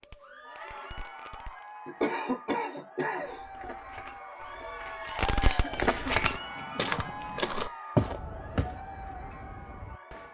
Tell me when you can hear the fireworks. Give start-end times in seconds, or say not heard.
0.0-1.8, 5.0-10.2.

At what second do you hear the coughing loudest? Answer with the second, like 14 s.
2 s.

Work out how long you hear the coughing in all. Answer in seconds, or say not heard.
3 s.